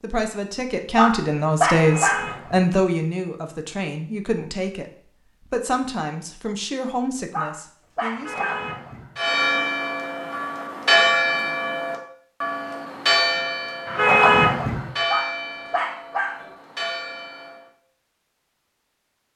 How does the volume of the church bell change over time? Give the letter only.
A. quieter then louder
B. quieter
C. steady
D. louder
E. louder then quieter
B.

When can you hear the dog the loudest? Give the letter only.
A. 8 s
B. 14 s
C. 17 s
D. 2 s
D.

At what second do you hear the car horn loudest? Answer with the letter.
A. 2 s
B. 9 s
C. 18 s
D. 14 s
D.